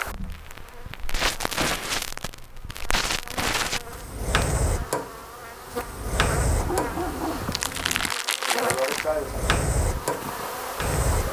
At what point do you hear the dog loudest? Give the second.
7 s.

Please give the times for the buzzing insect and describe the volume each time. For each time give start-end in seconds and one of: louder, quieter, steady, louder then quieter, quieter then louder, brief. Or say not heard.
0.0-11.2 louder.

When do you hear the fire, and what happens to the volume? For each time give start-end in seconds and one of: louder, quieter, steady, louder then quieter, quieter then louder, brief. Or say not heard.
0.1-11.2 steady.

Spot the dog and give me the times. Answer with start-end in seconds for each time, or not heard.
6.5-8.2.